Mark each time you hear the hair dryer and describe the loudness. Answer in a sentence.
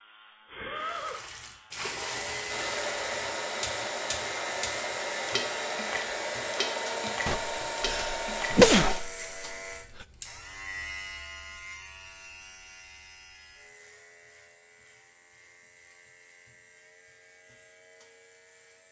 The hair dryer can be heard from 2.5 to 9.0 s, at a steady volume.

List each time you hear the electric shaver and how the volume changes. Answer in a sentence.
The electric shaver can be heard from 0.0 to 18.8 s, getting quieter.